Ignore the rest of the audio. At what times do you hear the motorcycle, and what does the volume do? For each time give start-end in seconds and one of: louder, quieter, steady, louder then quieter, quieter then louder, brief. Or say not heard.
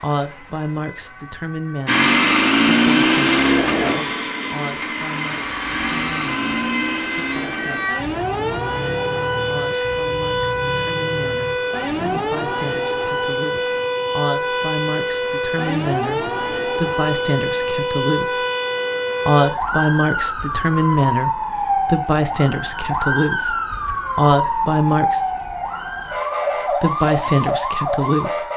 1.9-12.2 quieter.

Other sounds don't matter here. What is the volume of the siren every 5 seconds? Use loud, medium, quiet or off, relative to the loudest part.
quiet, loud, loud, loud, loud, loud.